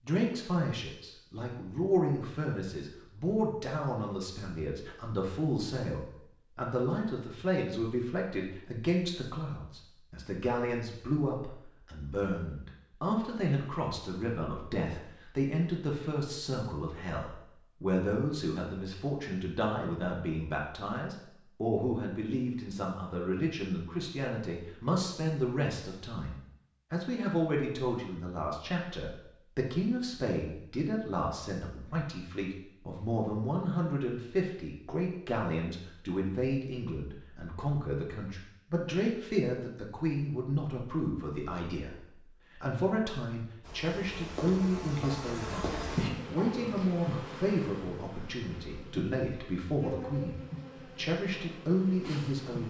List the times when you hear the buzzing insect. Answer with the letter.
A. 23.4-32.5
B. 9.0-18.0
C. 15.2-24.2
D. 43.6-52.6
D.